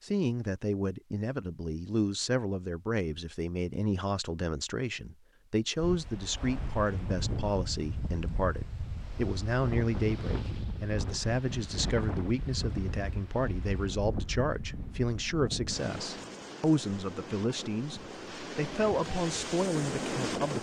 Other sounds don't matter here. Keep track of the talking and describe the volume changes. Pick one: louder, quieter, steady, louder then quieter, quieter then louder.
steady.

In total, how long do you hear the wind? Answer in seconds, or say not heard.
15 s.